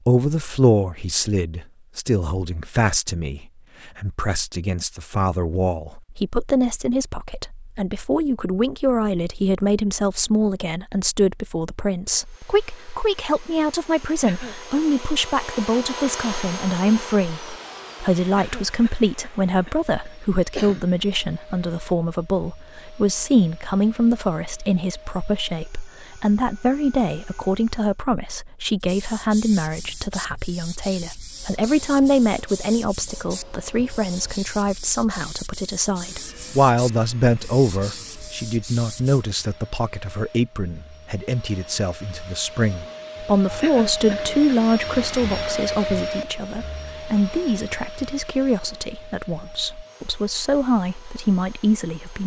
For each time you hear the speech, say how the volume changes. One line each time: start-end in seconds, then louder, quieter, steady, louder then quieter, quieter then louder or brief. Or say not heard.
0.1-52.2 steady.